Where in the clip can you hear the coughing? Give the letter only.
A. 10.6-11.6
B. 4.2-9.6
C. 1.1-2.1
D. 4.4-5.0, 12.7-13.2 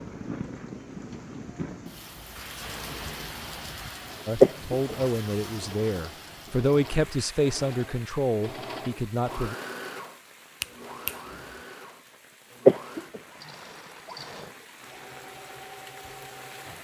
D.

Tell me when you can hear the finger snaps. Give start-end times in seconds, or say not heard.
10.6-11.6.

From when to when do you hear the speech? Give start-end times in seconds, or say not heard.
4.2-9.6.